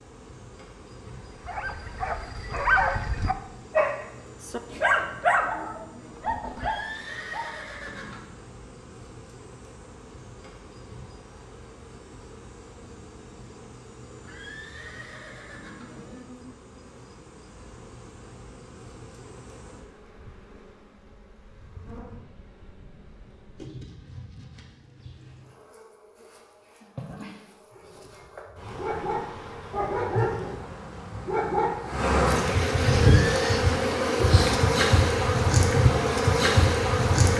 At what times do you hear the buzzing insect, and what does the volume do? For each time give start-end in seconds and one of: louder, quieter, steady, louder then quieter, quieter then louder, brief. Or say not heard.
0.0-37.3 louder.